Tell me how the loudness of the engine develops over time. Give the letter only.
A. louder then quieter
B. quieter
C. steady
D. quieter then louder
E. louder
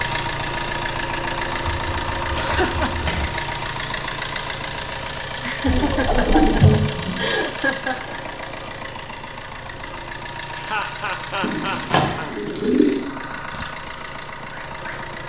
B.